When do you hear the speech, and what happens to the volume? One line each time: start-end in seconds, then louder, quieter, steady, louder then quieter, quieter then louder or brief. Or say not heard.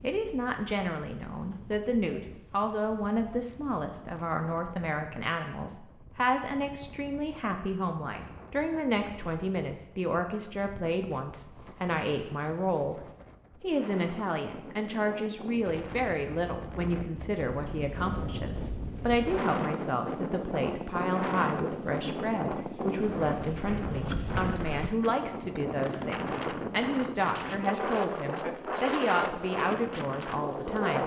0.0-13.0 steady
13.6-31.0 steady.